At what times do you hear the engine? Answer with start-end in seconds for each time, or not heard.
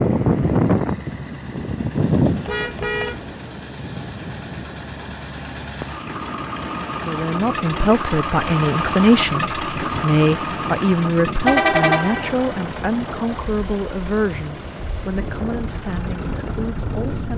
0.0-17.3.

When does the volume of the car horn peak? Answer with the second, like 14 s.
12 s.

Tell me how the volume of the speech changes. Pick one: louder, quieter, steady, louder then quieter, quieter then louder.
quieter.